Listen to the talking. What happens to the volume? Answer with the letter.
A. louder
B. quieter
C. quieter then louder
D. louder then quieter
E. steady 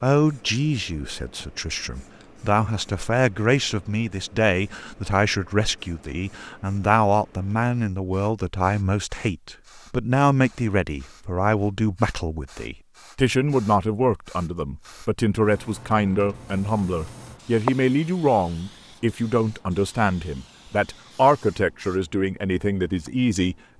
E.